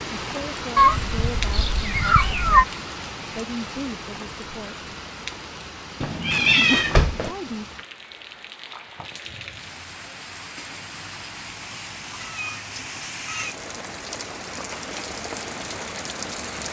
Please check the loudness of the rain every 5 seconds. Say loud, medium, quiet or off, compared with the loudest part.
loud, medium, loud, loud.